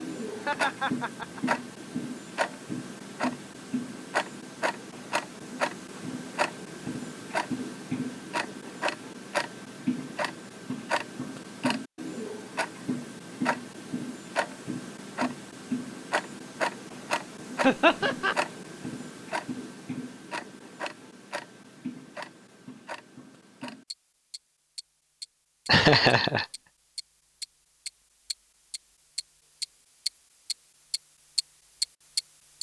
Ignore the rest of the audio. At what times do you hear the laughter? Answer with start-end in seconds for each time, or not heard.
0.3-1.6, 17.6-18.4, 25.6-26.4.